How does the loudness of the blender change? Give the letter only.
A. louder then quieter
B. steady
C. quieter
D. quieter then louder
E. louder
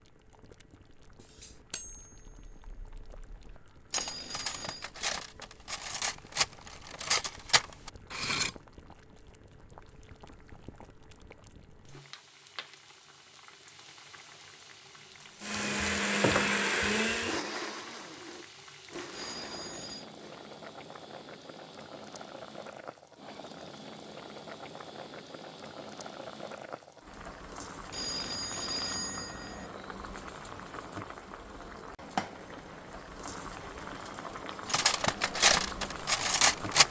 C.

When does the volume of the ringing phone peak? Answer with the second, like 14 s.
29 s.